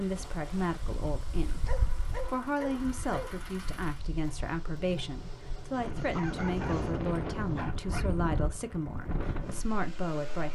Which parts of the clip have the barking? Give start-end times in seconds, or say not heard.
1.6-3.4, 6.1-8.2.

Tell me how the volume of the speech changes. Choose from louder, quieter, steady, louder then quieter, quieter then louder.
steady.